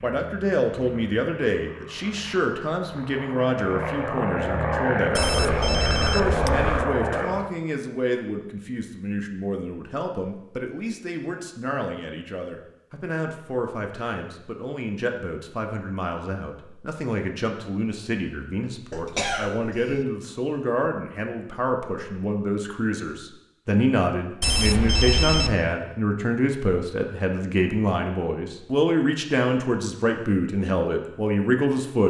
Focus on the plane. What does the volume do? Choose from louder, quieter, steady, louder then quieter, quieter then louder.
louder.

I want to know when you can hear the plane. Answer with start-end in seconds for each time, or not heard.
0.1-7.5.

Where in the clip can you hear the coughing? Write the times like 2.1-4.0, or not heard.
18.9-20.1.